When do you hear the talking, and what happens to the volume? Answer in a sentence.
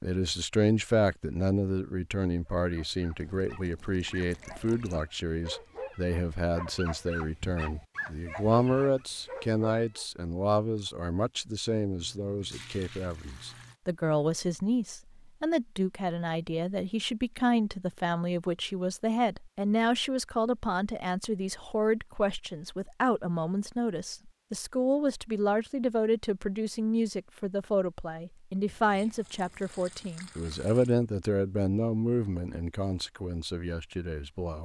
The talking can be heard from 0.0 to 34.5 s, at a steady volume.